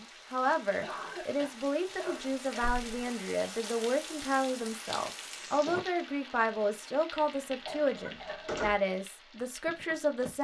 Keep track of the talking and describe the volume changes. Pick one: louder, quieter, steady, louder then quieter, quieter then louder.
steady.